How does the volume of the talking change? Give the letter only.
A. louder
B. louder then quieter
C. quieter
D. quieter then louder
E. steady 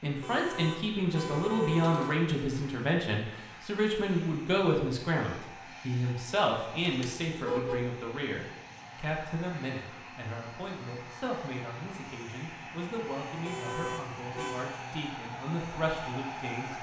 C.